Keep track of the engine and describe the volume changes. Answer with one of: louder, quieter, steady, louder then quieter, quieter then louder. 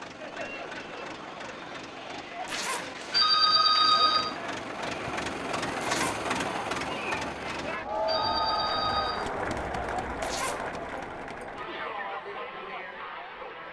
louder.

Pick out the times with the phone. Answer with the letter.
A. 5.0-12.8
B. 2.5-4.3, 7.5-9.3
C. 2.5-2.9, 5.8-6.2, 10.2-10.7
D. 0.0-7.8
B.